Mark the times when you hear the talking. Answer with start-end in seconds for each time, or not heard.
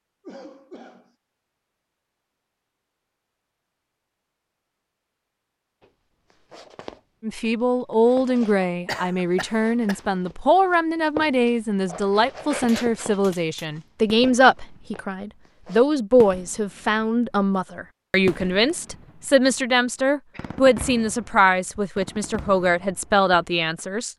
7.2-24.1.